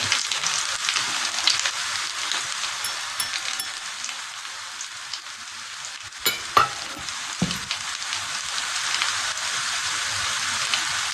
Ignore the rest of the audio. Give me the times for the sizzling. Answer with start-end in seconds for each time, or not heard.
0.0-11.0.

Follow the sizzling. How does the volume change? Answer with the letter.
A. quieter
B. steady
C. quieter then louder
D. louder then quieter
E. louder
C.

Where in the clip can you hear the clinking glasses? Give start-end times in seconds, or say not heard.
2.8-3.9, 6.2-7.6.